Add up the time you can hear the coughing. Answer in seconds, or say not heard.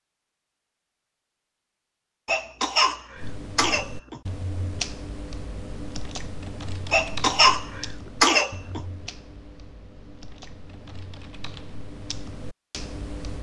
4 s.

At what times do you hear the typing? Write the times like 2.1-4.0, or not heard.
3.1-13.3.